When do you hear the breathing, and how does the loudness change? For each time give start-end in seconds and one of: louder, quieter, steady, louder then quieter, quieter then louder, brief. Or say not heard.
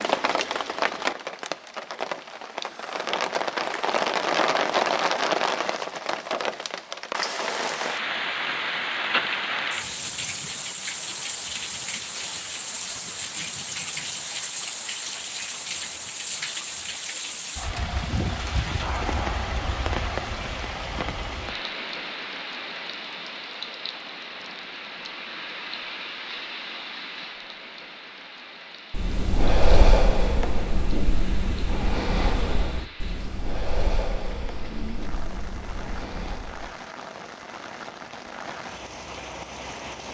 28.9-36.8 quieter.